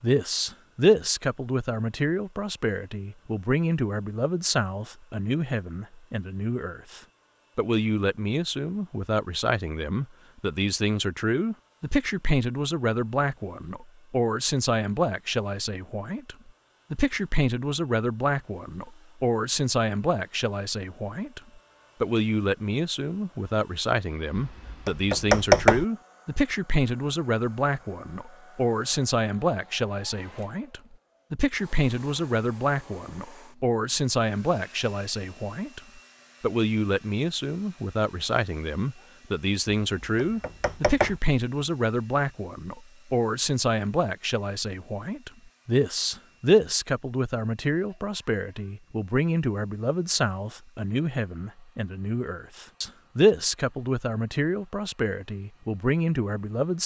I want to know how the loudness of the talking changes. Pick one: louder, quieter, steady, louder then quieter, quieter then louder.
steady.